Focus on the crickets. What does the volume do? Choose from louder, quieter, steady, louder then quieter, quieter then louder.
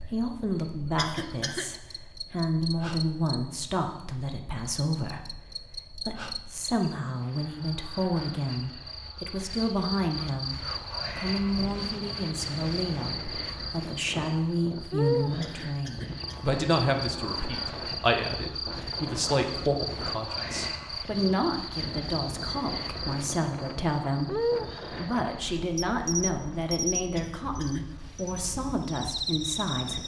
louder.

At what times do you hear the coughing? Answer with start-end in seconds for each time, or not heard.
0.9-1.7, 15.4-16.6, 27.1-27.9.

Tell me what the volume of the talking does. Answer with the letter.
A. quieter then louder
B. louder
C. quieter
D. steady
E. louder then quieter
D.